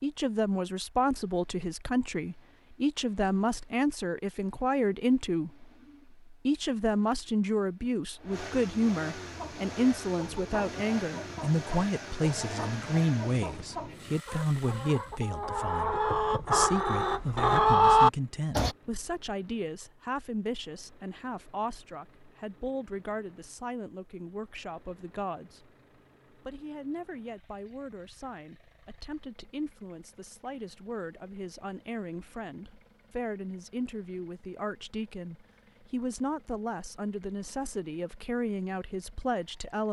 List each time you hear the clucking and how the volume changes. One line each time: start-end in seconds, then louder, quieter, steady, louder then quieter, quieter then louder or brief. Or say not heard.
9.2-18.8 louder.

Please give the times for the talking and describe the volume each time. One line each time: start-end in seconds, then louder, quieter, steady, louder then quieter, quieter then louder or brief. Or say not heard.
0.0-25.7 quieter
26.3-39.8 louder.